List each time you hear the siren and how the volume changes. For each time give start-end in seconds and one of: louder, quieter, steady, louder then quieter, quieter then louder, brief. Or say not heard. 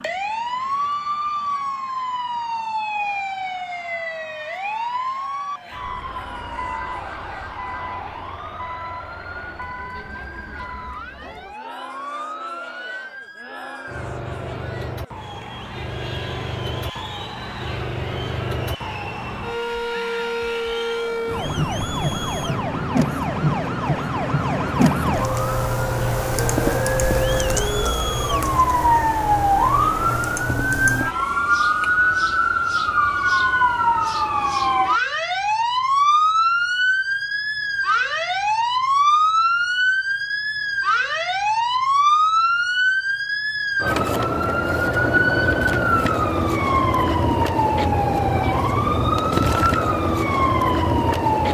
0.0-51.5 louder.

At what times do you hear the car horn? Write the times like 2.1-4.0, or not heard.
not heard.